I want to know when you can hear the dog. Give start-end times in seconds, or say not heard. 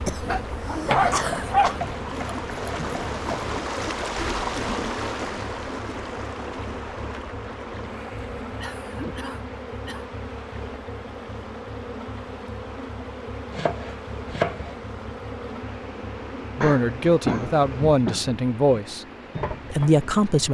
0.0-1.8.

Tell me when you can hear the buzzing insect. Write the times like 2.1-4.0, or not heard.
0.0-20.3.